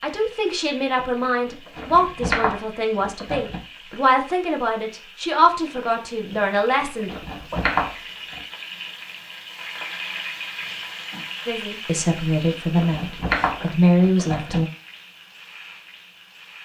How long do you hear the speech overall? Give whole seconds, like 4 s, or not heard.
11 s.